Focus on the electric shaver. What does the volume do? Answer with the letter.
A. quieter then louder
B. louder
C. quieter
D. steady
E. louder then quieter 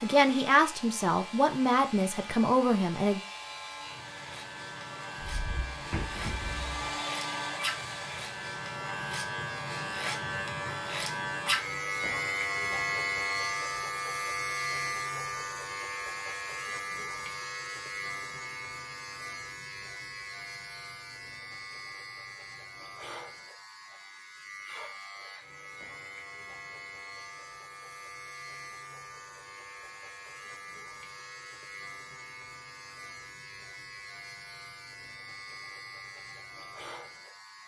E.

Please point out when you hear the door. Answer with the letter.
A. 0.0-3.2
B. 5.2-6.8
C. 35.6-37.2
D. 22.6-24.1
B.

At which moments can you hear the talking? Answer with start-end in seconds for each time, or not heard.
0.0-3.2.